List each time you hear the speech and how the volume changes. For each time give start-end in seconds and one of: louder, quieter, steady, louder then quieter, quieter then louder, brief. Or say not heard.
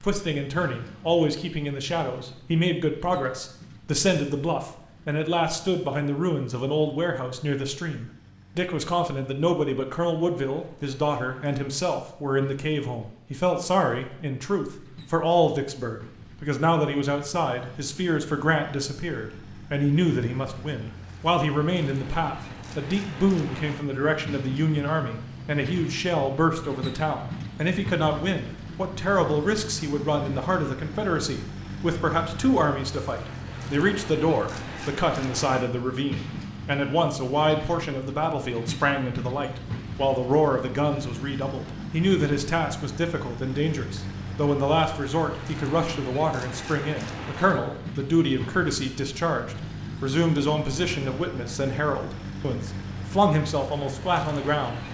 0.0-54.8 steady.